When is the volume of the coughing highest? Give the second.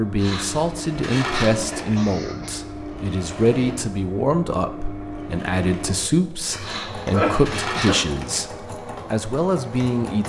7 s.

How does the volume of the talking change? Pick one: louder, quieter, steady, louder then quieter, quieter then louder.
steady.